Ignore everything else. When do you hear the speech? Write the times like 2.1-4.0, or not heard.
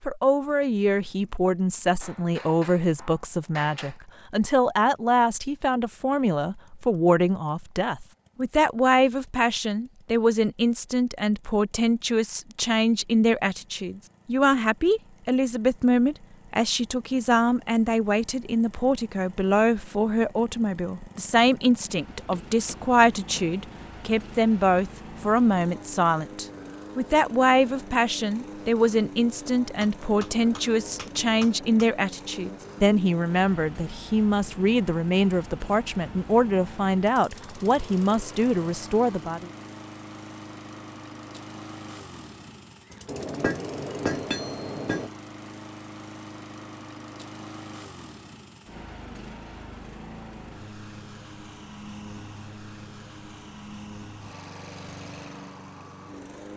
0.1-39.5.